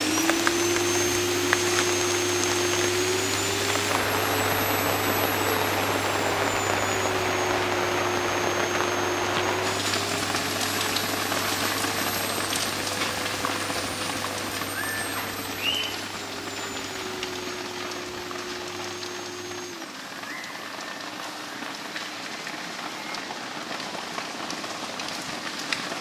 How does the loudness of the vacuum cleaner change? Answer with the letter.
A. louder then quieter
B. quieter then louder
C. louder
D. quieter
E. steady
D.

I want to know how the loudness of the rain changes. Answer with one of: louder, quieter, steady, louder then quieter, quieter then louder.
quieter.